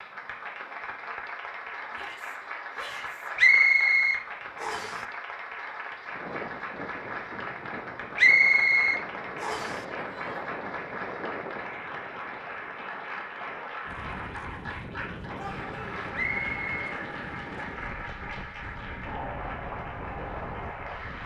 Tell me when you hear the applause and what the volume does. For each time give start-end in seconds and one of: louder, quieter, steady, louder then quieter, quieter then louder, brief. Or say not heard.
0.0-21.2 steady.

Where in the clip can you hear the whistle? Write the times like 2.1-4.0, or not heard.
3.4-5.0, 8.2-9.8, 16.1-16.8.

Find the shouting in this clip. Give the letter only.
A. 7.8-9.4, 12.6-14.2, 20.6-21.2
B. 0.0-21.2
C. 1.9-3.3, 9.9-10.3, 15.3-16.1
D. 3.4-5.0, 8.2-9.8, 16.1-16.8
C.